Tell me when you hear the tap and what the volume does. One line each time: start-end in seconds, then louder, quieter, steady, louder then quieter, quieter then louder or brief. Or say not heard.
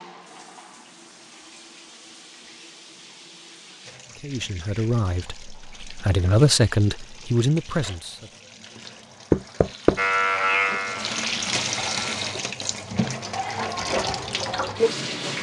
0.0-15.3 louder.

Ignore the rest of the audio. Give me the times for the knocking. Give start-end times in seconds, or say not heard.
9.3-10.0.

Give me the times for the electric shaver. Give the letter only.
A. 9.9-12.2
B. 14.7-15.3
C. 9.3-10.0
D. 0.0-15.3
A.